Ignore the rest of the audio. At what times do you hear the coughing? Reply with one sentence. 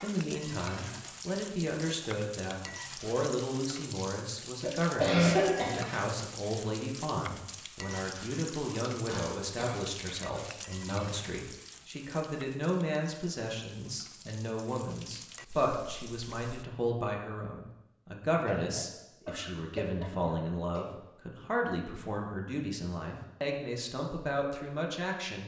You can hear the coughing from 4.6 to 6.0 s, from 9.1 to 10.3 s and from 18.3 to 20.9 s.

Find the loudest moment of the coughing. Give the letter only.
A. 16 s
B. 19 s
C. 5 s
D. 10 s
C.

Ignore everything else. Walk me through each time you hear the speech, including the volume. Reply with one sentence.
The speech can be heard from 0.0 to 25.4 s, at a steady volume.